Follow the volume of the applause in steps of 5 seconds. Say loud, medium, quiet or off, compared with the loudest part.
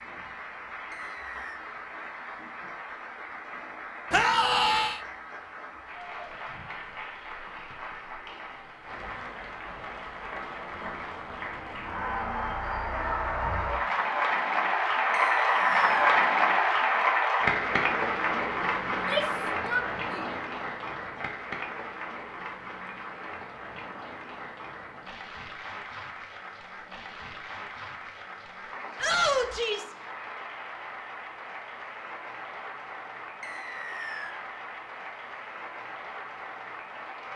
quiet, quiet, medium, loud, quiet, quiet, quiet, quiet.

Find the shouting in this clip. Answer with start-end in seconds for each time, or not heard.
4.1-5.0, 18.9-20.3, 28.9-29.9.